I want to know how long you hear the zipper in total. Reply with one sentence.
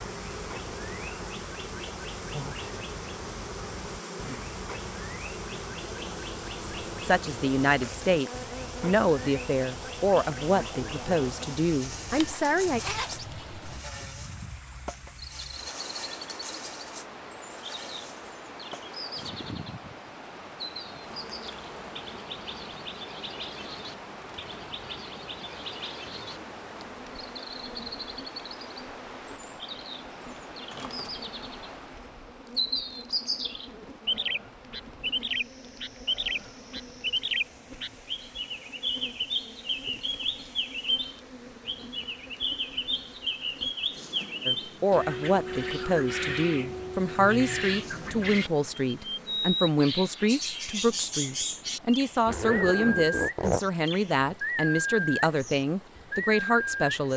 The zipper can be heard for 3 seconds in total.